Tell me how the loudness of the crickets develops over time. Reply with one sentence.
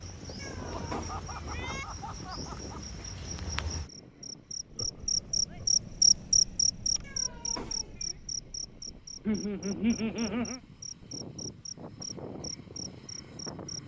The loudness of the crickets goes up, then down.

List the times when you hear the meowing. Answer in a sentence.
The meowing can be heard from 0.3 to 1.9 s and from 7.0 to 8.2 s.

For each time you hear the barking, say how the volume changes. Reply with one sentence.
The barking can't be heard in this clip.